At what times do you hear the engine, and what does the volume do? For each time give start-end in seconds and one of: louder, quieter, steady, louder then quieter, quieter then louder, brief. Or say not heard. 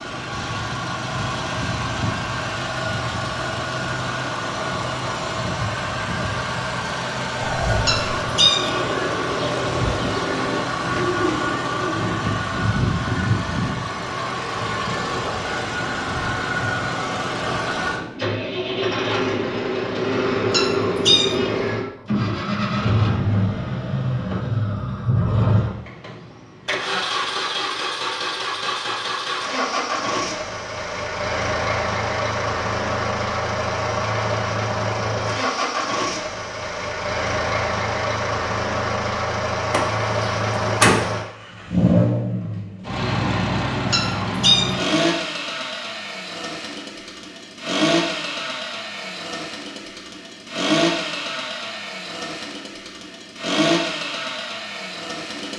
0.0-55.5 steady.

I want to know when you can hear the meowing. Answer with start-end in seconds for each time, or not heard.
7.8-8.9, 20.5-21.8, 43.9-45.0.